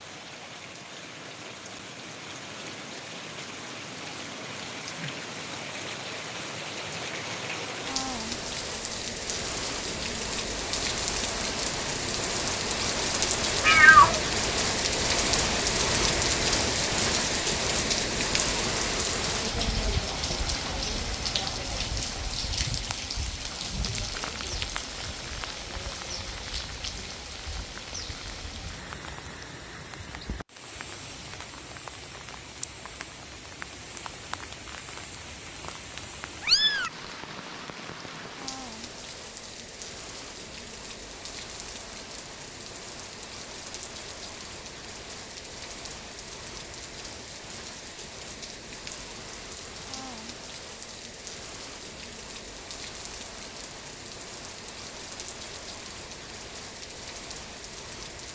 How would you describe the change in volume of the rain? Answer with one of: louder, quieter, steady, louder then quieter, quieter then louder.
louder then quieter.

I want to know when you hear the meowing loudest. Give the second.
14 s.